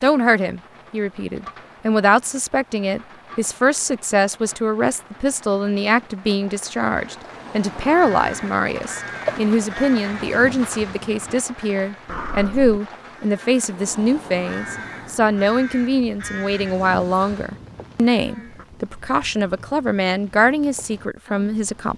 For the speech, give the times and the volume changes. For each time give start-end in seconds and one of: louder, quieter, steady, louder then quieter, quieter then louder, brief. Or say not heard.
0.0-21.9 steady.